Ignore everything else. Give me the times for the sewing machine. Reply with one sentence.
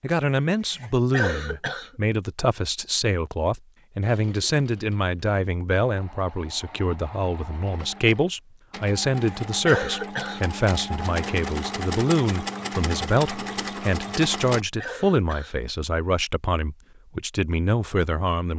You can hear the sewing machine from 4.0 to 14.7 s.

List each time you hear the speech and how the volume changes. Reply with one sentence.
The speech can be heard from 0.0 to 18.5 s, at a steady volume.